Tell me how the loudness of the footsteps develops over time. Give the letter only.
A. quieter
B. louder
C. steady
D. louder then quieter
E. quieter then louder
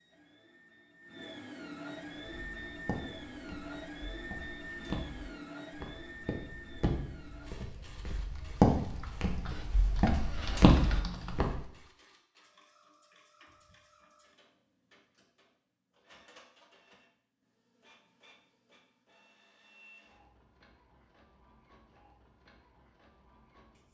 B.